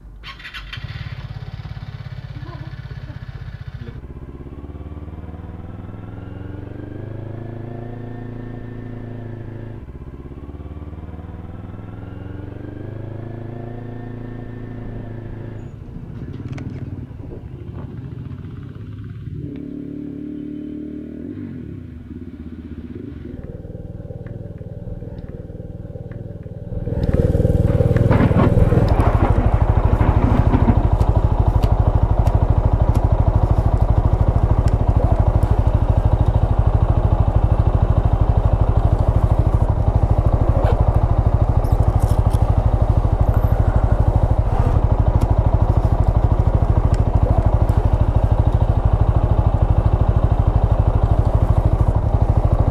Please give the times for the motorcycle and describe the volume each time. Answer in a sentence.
The motorcycle can be heard from 0.0 to 52.6 s, getting louder.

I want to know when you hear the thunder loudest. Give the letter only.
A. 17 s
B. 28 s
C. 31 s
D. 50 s
B.